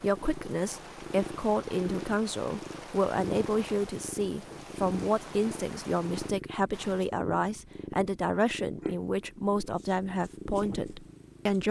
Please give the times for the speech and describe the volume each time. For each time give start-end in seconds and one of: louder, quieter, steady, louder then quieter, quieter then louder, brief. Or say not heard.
0.0-11.6 steady.